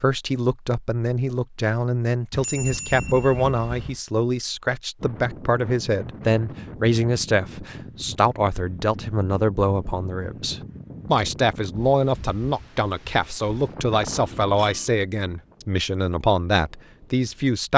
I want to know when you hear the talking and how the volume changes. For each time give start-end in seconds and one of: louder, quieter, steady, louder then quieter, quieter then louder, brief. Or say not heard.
0.0-17.7 steady.